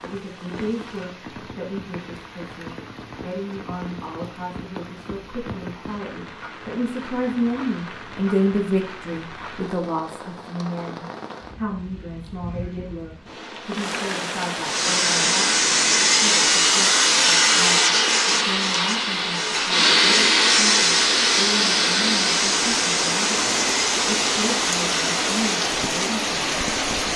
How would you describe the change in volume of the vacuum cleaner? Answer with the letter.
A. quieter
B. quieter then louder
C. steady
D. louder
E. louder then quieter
A.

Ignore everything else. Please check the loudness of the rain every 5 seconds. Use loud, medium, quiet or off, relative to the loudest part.
quiet, quiet, medium, medium, loud, loud.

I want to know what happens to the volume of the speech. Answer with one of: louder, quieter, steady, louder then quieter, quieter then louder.
louder then quieter.